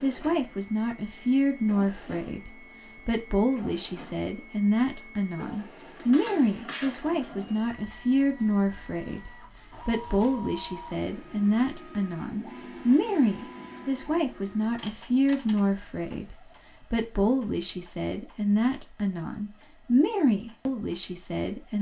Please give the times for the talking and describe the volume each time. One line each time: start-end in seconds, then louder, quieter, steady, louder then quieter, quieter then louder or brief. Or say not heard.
0.0-21.7 steady.